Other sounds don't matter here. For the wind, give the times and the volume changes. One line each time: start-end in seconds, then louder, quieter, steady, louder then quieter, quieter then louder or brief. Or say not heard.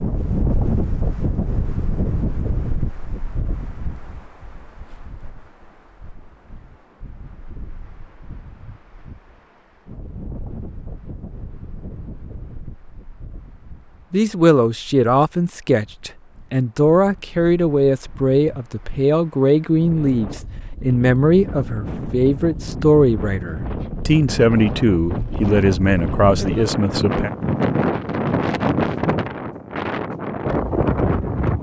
0.0-31.5 quieter then louder.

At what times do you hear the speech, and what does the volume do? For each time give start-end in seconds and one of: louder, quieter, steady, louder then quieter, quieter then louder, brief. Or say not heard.
14.1-27.3 steady.